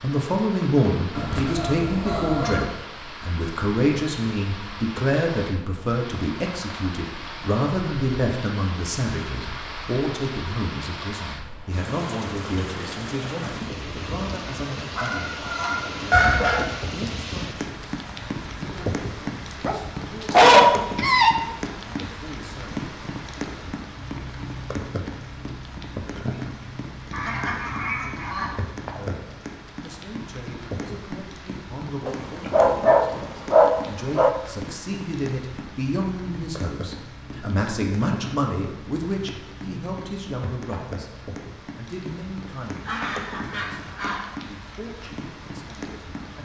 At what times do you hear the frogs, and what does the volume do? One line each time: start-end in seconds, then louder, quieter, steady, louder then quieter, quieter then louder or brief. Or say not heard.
not heard.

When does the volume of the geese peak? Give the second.
16 s.